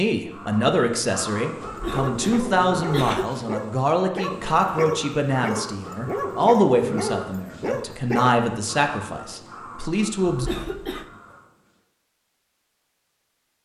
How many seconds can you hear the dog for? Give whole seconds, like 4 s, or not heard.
7 s.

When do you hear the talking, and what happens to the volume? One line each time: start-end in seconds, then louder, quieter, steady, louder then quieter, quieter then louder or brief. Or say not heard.
0.0-10.5 steady.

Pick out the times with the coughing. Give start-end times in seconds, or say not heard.
1.6-3.2, 10.2-11.1.